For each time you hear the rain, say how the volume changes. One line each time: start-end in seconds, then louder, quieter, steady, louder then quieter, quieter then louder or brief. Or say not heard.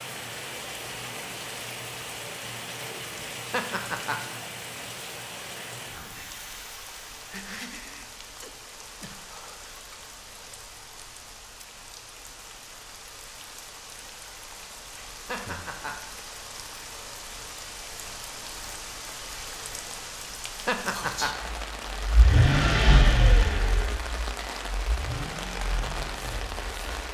0.0-27.1 quieter then louder.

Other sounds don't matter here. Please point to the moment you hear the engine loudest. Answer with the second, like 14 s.
23 s.